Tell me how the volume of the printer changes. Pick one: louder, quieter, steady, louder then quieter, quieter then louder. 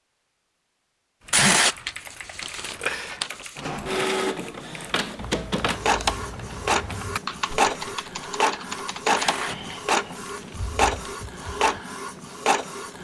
steady.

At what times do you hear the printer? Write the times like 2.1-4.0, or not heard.
3.5-12.9.